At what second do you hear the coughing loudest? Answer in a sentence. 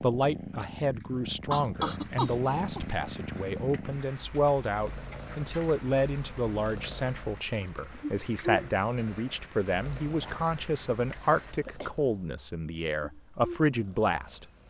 The volume of the coughing peaks at 2 seconds.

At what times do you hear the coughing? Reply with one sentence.
You can hear the coughing from 1.5 to 2.8 s and from 10.2 to 11.9 s.